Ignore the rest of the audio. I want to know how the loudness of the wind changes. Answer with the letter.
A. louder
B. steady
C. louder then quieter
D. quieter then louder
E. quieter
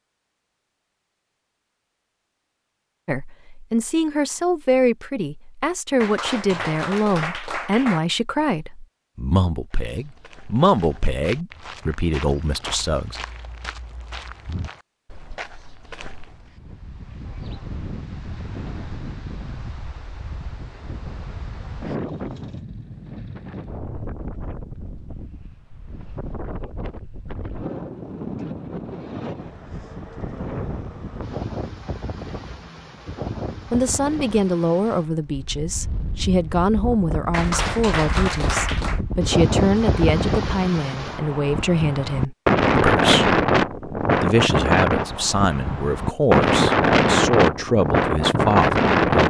A.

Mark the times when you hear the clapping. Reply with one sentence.
You can hear the clapping from 6.0 to 8.0 s and from 37.3 to 39.0 s.